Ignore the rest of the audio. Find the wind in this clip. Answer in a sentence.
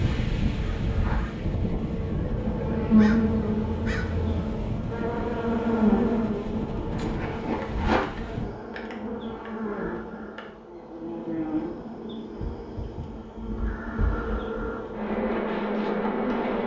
You can hear the wind from 0.0 to 8.5 s.